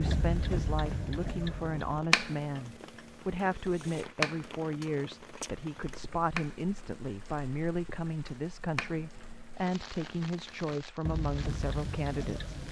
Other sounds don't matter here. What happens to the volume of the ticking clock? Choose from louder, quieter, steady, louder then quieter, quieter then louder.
quieter then louder.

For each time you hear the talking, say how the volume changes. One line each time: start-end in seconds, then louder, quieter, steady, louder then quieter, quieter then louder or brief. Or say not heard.
0.0-12.6 steady.